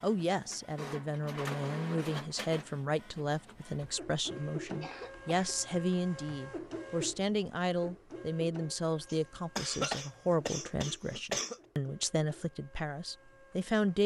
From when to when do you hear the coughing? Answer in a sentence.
You can hear the coughing from 4.3 to 5.3 s and from 9.1 to 11.6 s.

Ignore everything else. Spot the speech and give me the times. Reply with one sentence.
The speech can be heard from 0.0 to 14.0 s.